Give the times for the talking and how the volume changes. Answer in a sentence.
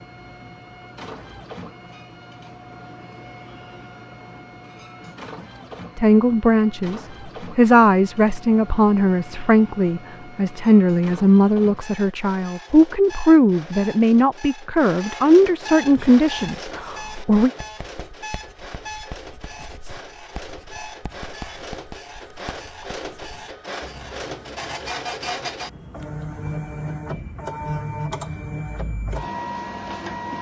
You can hear the talking from 6.0 to 17.5 s, at a steady volume.